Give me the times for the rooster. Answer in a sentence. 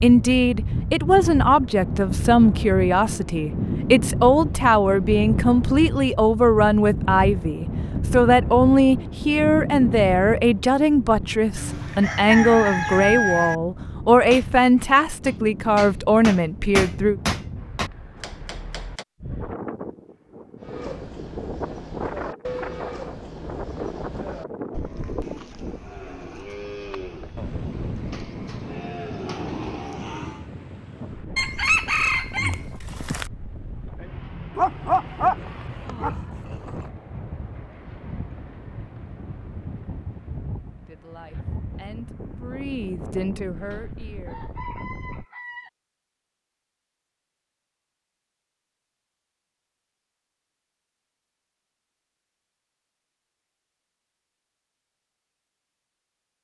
You can hear the rooster from 11.6 to 13.6 s, from 31.4 to 33.3 s and from 43.7 to 45.7 s.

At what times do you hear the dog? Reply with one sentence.
The dog can be heard from 34.5 to 36.9 s.